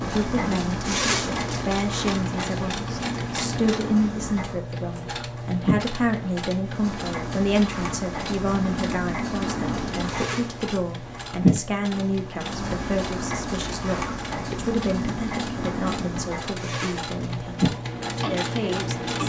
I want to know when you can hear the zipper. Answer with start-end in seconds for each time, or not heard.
0.8-1.6, 10.1-10.8, 16.6-17.4.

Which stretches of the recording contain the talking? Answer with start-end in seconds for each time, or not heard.
0.0-19.2.